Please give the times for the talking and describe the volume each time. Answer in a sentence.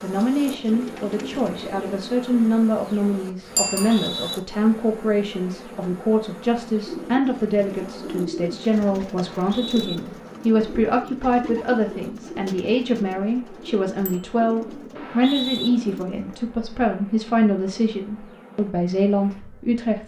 The talking can be heard from 0.0 to 20.0 s, at a steady volume.